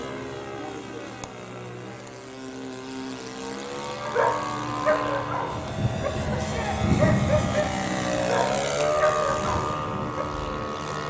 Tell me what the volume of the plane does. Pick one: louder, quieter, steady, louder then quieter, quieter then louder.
louder.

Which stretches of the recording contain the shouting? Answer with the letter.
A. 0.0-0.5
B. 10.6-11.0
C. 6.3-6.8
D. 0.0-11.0
C.